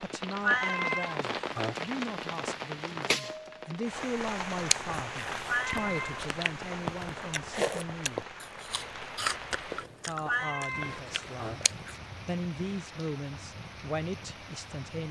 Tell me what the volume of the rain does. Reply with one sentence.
The volume of the rain goes down.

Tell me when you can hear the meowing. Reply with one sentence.
The meowing can be heard from 0.4 to 1.9 s, from 5.5 to 6.2 s and from 10.2 to 11.7 s.